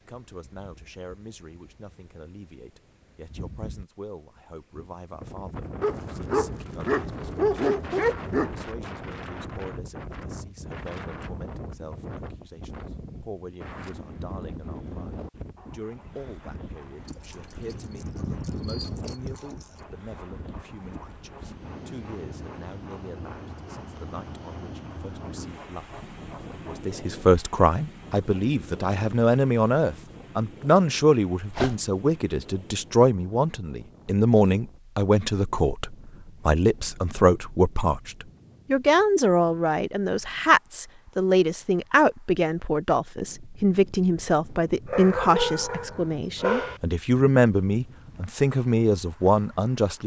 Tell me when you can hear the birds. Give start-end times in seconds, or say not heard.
not heard.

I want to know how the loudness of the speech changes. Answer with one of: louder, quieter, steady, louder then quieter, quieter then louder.
louder.